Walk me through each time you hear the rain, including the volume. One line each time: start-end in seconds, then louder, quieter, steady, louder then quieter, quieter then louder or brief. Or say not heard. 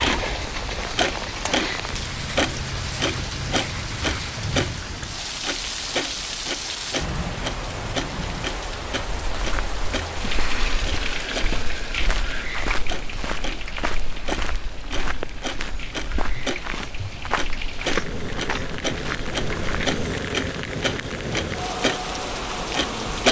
0.0-23.2 quieter then louder.